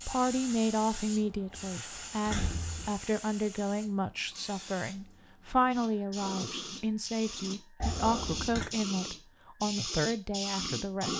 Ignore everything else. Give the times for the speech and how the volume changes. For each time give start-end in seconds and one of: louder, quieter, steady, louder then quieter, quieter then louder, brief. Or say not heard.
0.1-11.1 steady.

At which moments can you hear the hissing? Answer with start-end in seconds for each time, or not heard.
0.0-11.1.